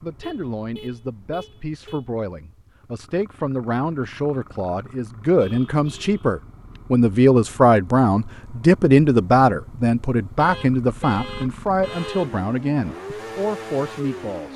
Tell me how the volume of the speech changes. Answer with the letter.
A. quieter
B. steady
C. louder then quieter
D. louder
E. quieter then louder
C.